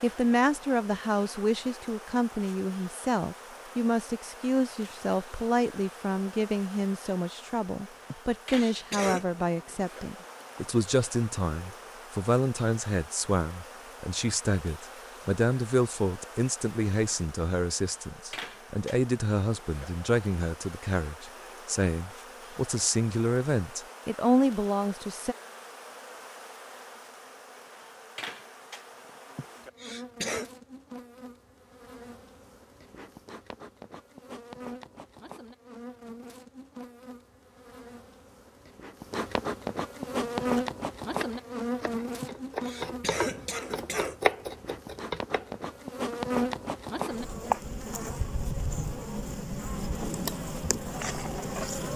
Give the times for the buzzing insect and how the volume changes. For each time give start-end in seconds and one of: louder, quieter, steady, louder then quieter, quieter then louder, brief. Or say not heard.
0.0-51.9 louder.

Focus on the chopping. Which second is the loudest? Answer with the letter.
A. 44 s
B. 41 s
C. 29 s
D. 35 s
A.